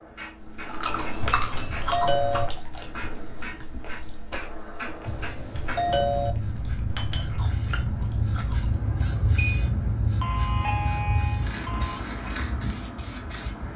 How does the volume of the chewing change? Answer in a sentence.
The loudness of the chewing goes down, then up.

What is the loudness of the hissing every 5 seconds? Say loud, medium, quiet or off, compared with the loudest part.
medium, loud, loud.